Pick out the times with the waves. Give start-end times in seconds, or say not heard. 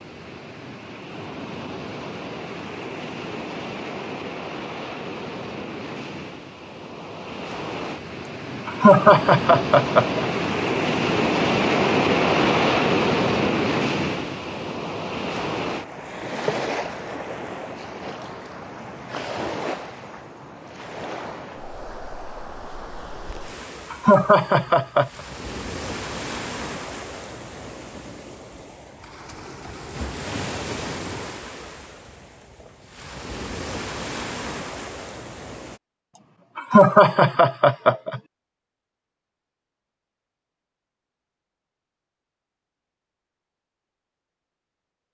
0.0-35.8.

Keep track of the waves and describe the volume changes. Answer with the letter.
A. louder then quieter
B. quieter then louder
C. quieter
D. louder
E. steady
A.